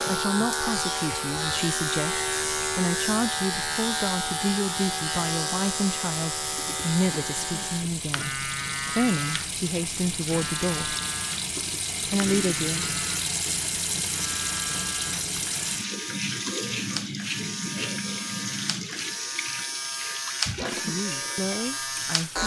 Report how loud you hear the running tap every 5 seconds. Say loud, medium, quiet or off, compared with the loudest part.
medium, medium, loud, loud, medium.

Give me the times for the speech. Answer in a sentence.
You can hear the speech from 0.1 to 10.9 s, from 12.1 to 12.8 s and from 20.7 to 22.4 s.